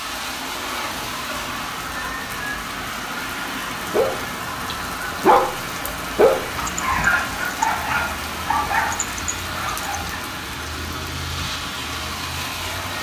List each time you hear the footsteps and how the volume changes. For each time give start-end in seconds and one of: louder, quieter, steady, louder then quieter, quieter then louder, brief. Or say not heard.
not heard.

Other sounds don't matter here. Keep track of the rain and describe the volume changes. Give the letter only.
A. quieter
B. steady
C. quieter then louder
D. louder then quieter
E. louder
B.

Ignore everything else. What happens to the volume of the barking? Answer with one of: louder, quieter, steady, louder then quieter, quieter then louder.
quieter.